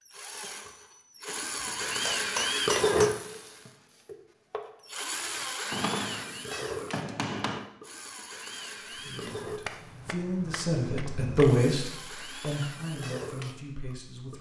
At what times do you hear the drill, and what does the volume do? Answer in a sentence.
You can hear the drill from 0.0 to 14.3 s, getting quieter.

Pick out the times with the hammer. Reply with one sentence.
You can hear the hammer from 1.6 to 3.2 s, from 5.7 to 7.7 s and from 9.7 to 11.5 s.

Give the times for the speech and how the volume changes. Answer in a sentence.
The speech can be heard from 8.9 to 14.3 s, getting louder then quieter.